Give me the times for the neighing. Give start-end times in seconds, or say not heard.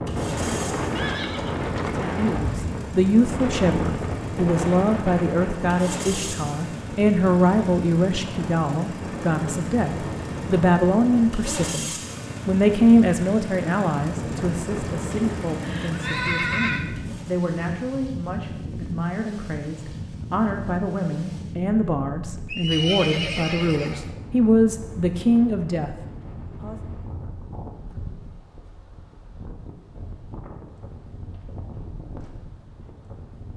0.9-2.8, 15.1-16.8, 22.4-24.2.